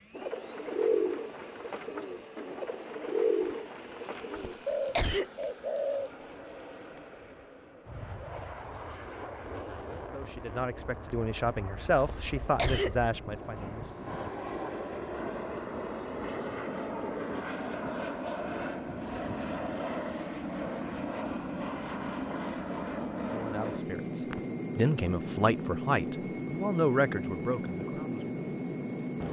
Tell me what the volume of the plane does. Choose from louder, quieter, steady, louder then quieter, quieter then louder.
louder.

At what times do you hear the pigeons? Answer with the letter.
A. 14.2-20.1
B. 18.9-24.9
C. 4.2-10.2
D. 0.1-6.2
D.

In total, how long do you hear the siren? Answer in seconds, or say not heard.
not heard.